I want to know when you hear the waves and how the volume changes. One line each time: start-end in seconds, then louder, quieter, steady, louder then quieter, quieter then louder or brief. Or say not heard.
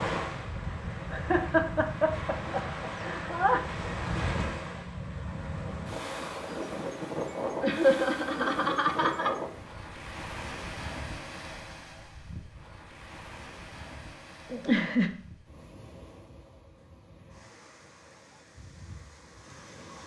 0.0-20.0 quieter.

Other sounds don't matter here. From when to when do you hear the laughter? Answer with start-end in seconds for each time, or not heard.
1.1-3.6, 7.6-9.3, 14.5-15.1.